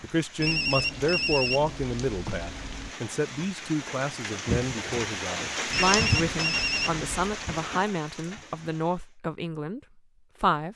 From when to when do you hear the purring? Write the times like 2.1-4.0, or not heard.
not heard.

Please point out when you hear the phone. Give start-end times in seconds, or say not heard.
0.3-3.0, 5.7-7.4.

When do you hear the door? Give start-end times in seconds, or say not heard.
not heard.